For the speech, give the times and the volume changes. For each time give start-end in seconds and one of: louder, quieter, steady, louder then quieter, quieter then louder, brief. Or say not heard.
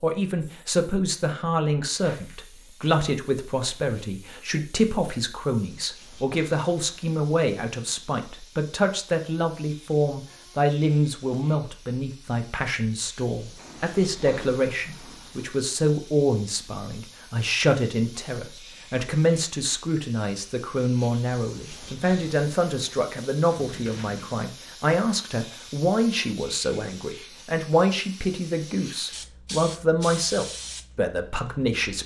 0.0-32.0 steady.